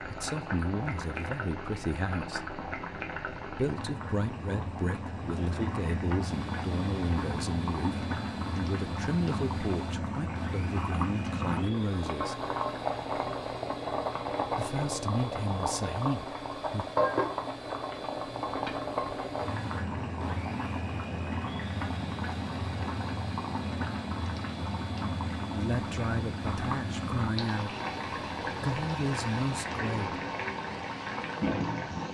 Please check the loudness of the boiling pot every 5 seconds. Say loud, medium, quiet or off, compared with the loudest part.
medium, loud, loud, loud, loud, loud, loud.